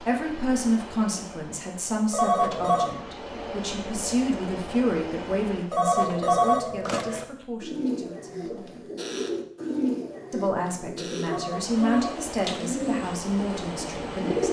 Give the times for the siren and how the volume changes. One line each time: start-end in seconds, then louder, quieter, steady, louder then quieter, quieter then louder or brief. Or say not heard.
not heard.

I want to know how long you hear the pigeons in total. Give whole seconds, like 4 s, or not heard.
7 s.